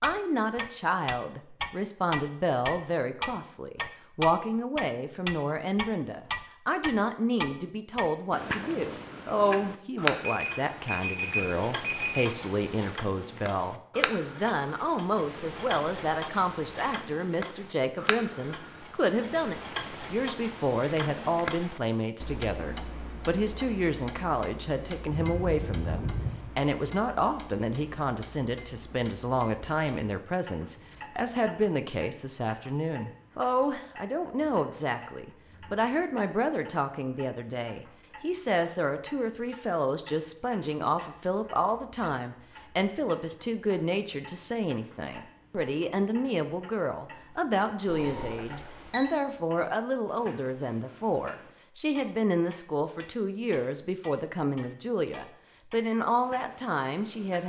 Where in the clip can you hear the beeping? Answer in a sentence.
The beeping can be heard from 10.2 to 12.2 s, from 25.1 to 26.3 s and from 47.9 to 49.0 s.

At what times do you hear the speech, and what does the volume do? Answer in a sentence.
You can hear the speech from 0.0 to 57.4 s, at a steady volume.